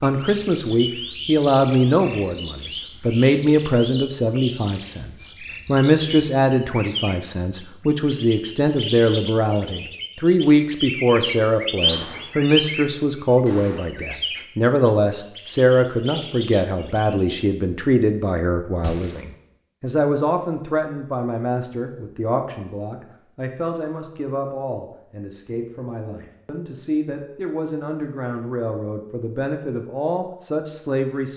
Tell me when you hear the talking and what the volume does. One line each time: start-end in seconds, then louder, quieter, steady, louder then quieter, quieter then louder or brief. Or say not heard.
0.0-31.3 quieter.